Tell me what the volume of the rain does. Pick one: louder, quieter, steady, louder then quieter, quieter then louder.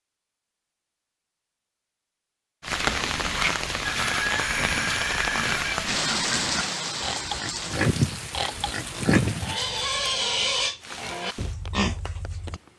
quieter.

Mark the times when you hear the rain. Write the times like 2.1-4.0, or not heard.
2.6-12.7.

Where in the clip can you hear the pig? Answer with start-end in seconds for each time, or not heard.
2.6-12.6.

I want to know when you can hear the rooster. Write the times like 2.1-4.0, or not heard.
3.9-5.8.